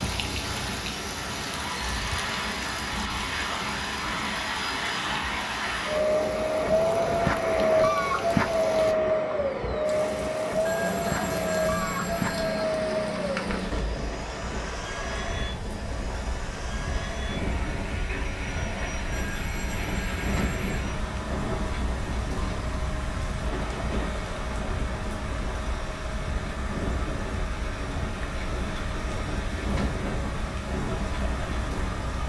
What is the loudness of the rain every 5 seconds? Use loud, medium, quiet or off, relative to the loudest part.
loud, medium, loud, loud, loud, loud, loud.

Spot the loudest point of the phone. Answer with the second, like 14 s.
12 s.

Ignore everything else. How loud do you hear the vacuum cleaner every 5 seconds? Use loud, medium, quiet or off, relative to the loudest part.
medium, loud, medium, quiet, quiet, quiet, quiet.